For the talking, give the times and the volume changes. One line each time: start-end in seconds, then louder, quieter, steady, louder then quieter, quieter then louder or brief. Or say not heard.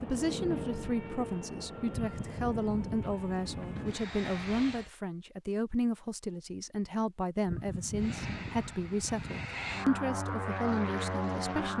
0.0-11.7 steady.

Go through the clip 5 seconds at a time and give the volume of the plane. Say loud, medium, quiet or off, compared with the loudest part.
medium, medium, loud.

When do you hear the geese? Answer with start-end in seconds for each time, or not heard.
1.9-4.0, 7.5-9.5.